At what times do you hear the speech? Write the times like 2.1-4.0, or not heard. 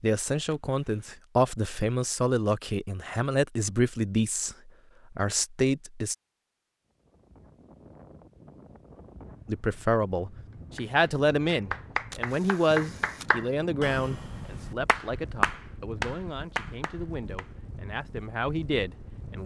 0.0-6.2, 9.4-19.4.